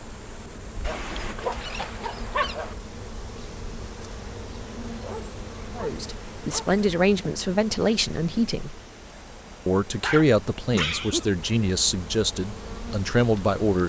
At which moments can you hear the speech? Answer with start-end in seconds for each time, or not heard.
5.8-8.8, 9.7-13.8.